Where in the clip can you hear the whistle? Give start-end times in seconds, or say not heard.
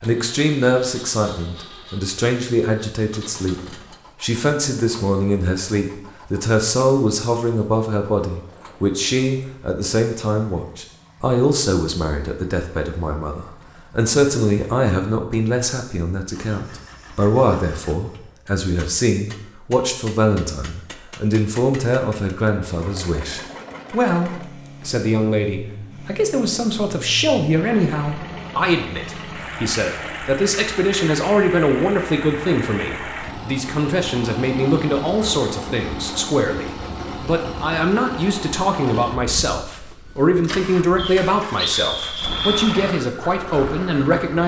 41.0-42.8.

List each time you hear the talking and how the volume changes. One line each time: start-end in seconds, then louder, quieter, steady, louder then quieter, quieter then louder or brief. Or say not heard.
0.0-44.4 steady.